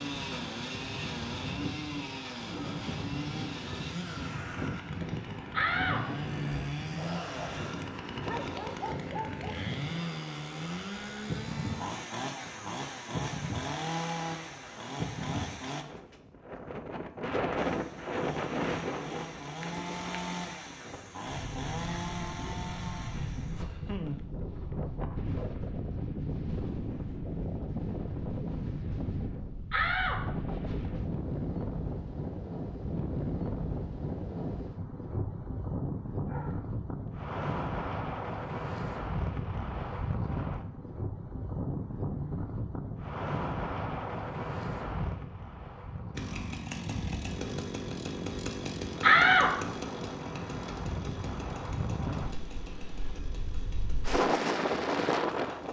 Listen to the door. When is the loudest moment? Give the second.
49 s.